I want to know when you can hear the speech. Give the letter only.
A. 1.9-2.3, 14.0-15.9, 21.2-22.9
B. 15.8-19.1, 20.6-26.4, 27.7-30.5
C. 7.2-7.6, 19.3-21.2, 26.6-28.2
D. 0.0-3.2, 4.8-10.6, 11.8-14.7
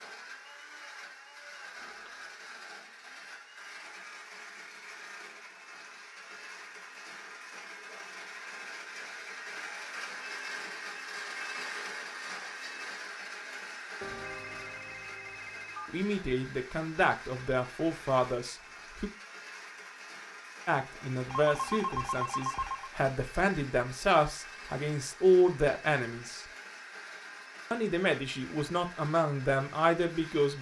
B.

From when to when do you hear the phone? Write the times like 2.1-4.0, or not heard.
1.9-2.3, 14.0-15.9, 21.2-22.9.